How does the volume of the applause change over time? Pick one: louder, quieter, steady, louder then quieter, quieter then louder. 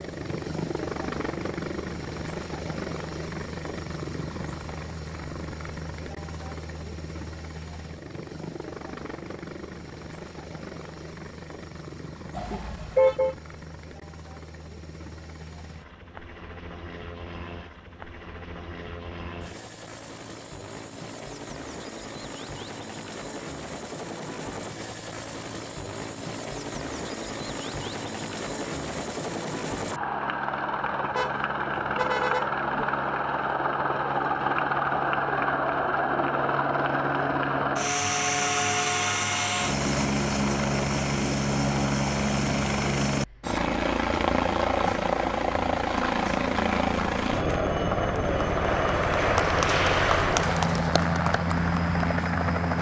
louder then quieter.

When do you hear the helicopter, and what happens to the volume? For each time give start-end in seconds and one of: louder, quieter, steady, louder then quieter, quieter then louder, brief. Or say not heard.
0.0-52.7 quieter then louder.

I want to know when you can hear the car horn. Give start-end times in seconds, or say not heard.
12.3-13.3, 31.1-32.9.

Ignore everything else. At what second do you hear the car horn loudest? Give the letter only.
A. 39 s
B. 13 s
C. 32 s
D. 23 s
B.